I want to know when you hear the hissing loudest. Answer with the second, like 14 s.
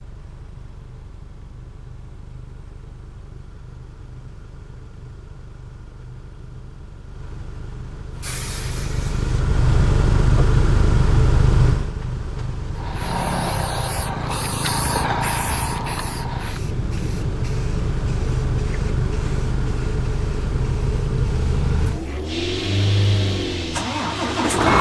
15 s.